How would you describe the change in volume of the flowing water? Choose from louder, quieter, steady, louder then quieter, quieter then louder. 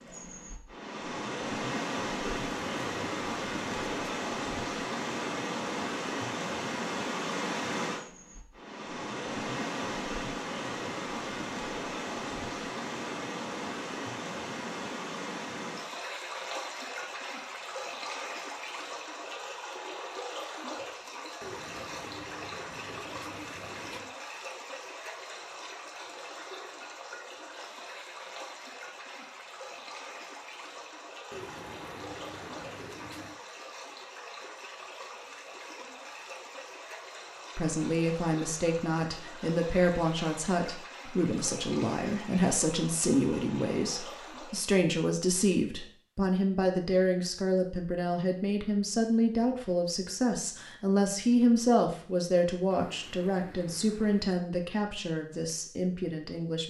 quieter.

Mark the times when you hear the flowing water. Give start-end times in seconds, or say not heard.
0.0-44.8.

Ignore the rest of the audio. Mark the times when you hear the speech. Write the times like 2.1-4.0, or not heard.
37.5-56.6.